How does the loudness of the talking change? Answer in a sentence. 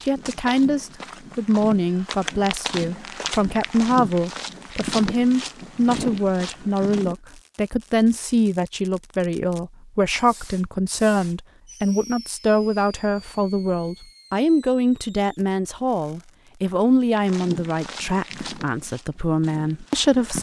The volume of the talking stays about the same.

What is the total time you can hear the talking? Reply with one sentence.
The talking can be heard for 20 seconds in total.